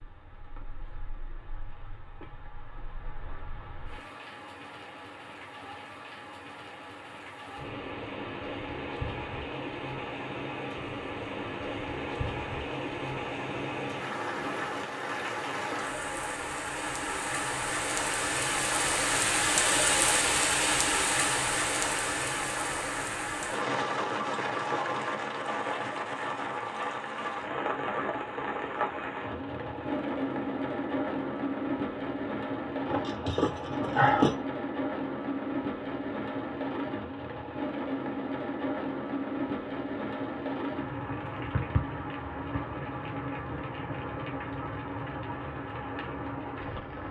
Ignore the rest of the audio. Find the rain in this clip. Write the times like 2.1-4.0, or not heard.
0.0-47.0.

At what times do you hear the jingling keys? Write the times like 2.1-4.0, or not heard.
32.9-34.4.